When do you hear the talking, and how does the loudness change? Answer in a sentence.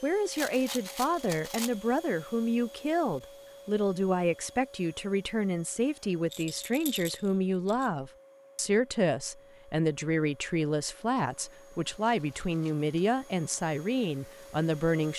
The talking can be heard from 0.0 to 15.1 s, at a steady volume.